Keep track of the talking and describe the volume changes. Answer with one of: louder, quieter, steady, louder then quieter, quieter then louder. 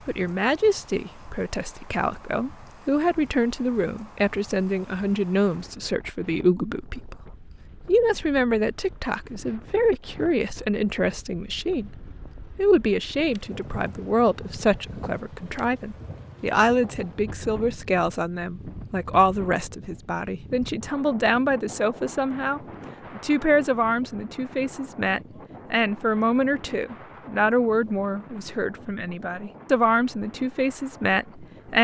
steady.